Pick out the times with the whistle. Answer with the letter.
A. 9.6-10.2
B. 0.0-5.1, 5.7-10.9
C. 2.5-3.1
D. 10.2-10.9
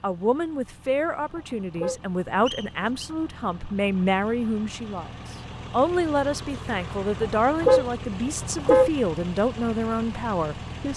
C.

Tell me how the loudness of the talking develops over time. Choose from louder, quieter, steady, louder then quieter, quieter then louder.
steady.